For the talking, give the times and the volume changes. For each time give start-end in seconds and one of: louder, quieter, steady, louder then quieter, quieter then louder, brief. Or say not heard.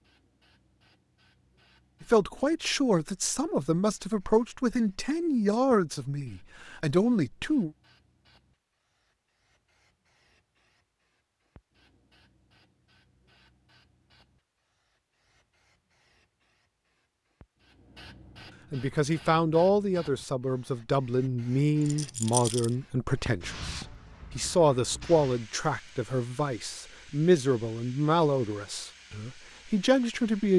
2.0-7.7 steady
18.7-30.5 steady.